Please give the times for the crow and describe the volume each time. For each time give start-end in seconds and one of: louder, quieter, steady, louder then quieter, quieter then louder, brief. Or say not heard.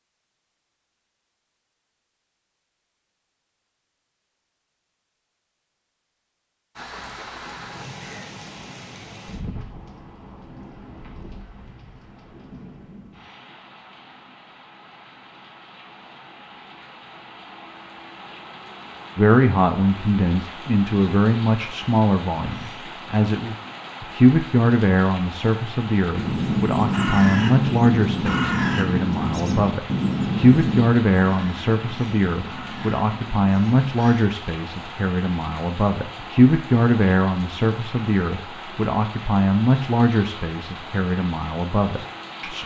26.1-34.3 quieter.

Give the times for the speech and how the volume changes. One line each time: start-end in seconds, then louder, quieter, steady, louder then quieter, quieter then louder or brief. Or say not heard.
19.1-42.6 steady.